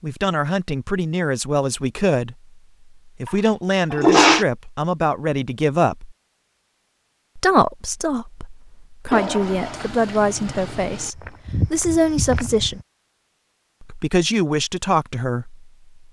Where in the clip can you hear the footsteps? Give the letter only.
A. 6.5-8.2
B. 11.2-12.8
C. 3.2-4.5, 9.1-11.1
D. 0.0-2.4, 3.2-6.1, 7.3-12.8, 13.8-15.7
B.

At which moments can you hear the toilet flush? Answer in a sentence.
The toilet flush can be heard from 3.2 to 4.5 s and from 9.1 to 11.1 s.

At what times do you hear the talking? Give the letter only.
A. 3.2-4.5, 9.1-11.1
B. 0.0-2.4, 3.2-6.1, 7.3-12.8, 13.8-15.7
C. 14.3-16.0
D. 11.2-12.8
B.